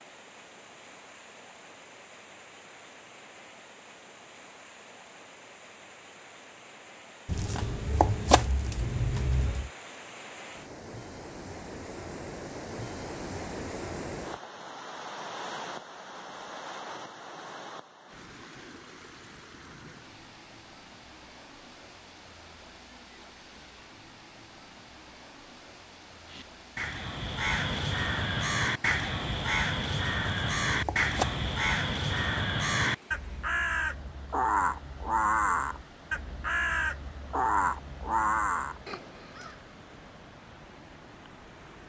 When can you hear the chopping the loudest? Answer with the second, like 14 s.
8 s.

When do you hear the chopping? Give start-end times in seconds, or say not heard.
7.2-9.7, 30.2-31.4.